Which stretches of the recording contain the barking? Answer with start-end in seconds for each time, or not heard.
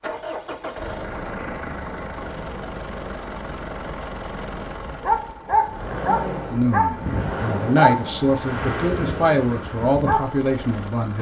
4.8-10.4.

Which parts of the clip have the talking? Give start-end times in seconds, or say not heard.
6.5-11.1.